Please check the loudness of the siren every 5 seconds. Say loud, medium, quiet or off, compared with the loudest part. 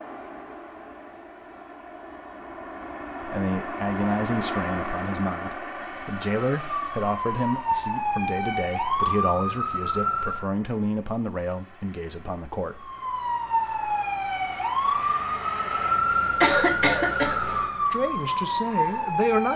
off, loud, loud, loud.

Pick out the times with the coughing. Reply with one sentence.
You can hear the coughing from 16.4 to 17.4 s.